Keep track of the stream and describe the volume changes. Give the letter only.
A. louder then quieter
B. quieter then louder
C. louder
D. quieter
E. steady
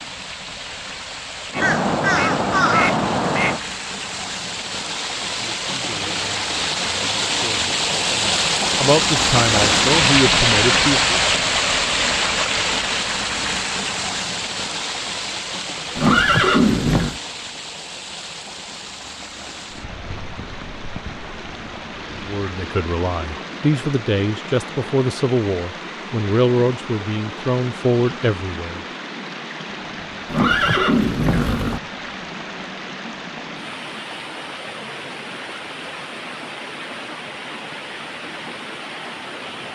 A.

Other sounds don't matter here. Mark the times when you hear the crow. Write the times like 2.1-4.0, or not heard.
1.5-3.6.